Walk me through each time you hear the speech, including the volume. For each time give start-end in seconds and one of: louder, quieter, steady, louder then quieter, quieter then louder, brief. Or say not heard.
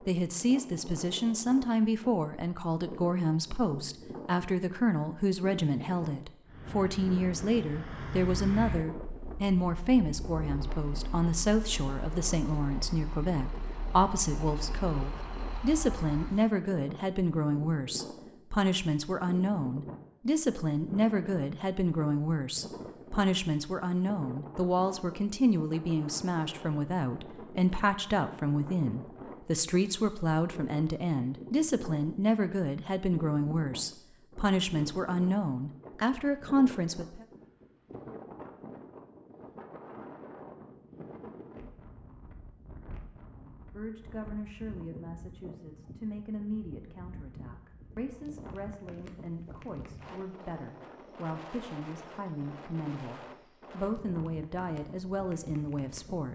0.0-37.2 steady
43.4-56.3 louder.